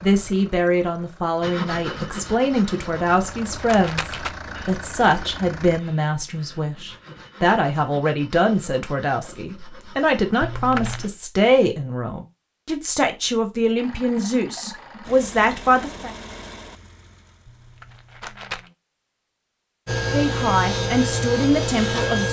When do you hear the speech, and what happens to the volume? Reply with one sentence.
You can hear the speech from 0.0 to 16.1 s, at a steady volume; and briefly from 20.1 to 22.2 s.